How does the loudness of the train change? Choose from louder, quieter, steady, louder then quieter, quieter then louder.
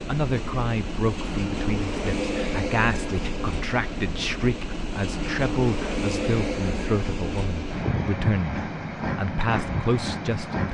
steady.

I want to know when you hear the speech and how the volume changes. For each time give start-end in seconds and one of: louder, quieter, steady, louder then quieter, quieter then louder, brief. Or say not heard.
0.0-10.6 steady.